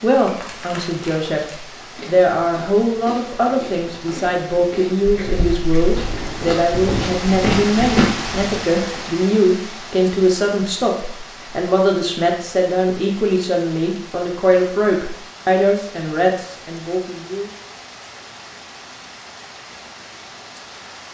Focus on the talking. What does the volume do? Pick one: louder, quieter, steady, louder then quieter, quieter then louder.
steady.